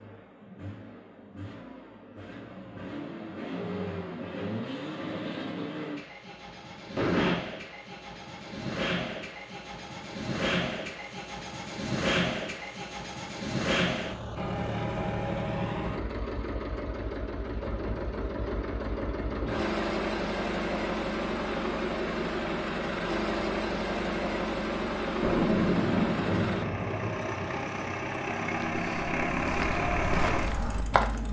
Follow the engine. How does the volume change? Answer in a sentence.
The volume of the engine goes up.